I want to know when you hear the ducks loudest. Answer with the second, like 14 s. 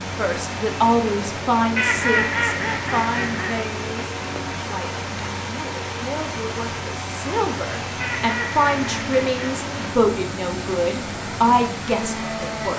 2 s.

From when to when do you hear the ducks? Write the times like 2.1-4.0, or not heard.
1.8-3.6, 8.0-9.6.